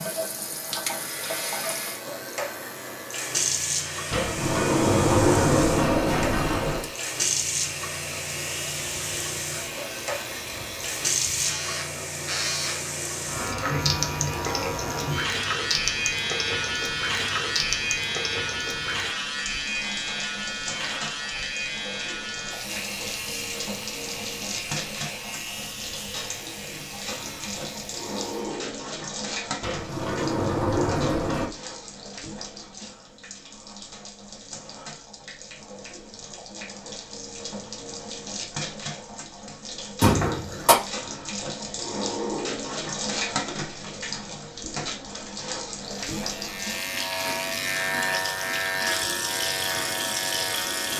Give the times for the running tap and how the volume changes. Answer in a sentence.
The running tap can be heard from 0.0 to 50.9 s, getting quieter then louder.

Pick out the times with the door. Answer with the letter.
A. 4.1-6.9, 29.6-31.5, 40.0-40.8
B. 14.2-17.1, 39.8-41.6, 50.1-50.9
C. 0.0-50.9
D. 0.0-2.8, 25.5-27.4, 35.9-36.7
A.